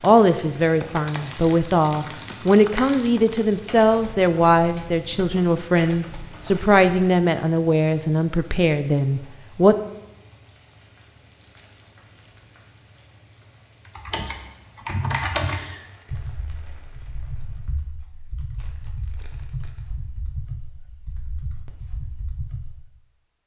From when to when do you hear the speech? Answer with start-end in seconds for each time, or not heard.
0.0-9.8.